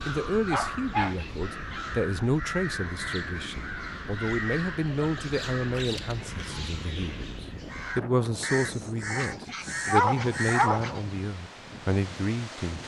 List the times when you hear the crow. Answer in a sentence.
You can hear the crow from 0.0 to 10.7 s.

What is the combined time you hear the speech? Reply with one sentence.
The speech can be heard for 13 seconds in total.